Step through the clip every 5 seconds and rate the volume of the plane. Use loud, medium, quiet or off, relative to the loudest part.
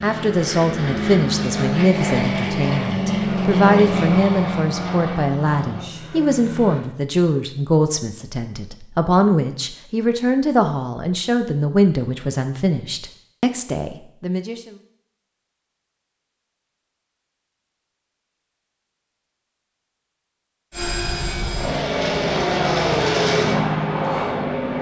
loud, medium, off, off, loud.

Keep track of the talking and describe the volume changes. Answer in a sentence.
The volume of the talking stays about the same.